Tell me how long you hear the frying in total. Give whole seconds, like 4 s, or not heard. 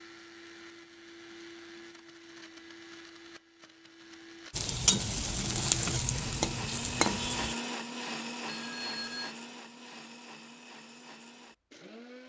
3 s.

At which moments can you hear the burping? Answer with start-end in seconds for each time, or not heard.
not heard.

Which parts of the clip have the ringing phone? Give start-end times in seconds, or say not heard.
8.4-9.3.